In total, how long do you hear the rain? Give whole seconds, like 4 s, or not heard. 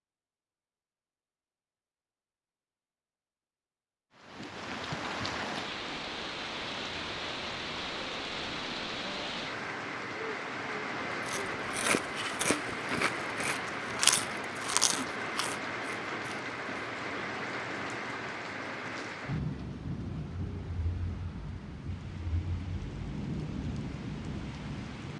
21 s.